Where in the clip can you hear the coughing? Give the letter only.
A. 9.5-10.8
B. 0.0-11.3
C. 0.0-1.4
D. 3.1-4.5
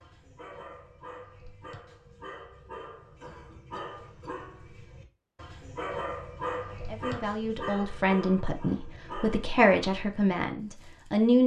D.